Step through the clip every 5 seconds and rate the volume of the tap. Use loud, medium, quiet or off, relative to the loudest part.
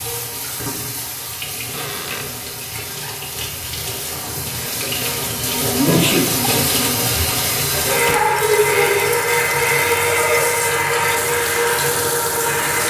medium, loud, loud.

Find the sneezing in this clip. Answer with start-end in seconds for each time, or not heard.
5.8-6.3.